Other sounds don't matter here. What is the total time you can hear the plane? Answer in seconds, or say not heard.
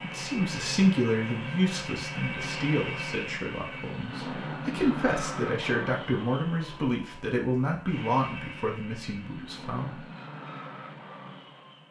12 s.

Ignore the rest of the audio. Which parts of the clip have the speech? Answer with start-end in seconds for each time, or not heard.
0.0-10.0.